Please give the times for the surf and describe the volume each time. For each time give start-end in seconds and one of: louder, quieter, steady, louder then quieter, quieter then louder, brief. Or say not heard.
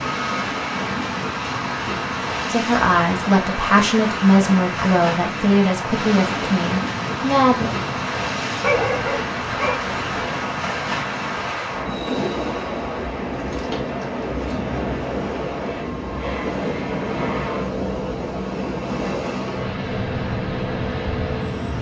0.0-21.7 steady.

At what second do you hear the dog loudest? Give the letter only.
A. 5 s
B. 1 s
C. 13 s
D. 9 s
D.